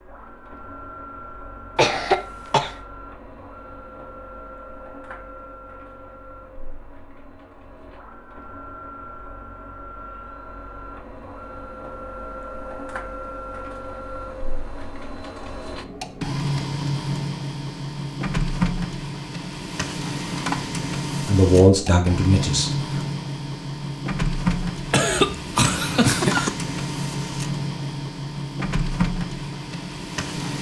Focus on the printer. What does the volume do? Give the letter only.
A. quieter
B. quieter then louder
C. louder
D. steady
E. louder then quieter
C.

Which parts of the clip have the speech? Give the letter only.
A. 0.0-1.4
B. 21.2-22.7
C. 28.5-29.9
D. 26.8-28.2
B.